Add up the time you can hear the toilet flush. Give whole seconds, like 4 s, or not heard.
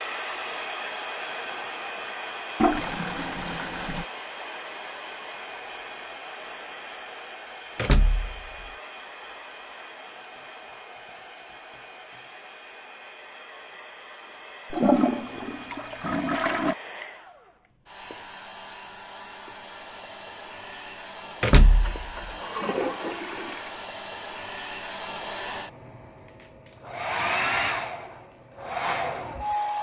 6 s.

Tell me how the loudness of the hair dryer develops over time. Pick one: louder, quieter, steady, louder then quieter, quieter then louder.
quieter then louder.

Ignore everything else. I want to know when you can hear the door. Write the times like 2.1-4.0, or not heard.
7.8-8.7, 21.4-22.4.